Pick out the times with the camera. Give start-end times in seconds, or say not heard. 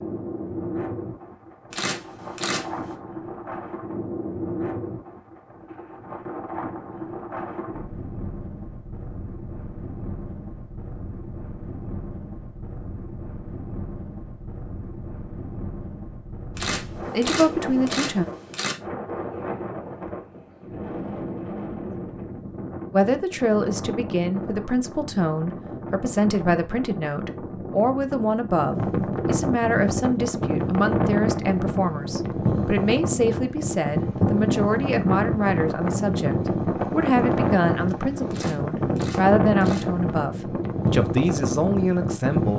1.7-3.0, 16.6-18.8, 38.3-40.1.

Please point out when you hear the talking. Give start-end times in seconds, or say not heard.
17.1-18.2, 22.9-42.5.